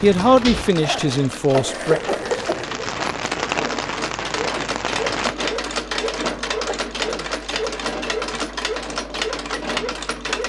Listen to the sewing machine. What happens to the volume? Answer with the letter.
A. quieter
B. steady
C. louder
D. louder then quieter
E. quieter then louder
C.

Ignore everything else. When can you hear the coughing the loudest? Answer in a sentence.
The loudest moment of the coughing is at 2 seconds.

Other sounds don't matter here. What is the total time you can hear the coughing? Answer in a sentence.
You can hear the coughing for 3 seconds altogether.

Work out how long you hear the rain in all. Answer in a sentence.
The rain can be heard for 5 seconds in total.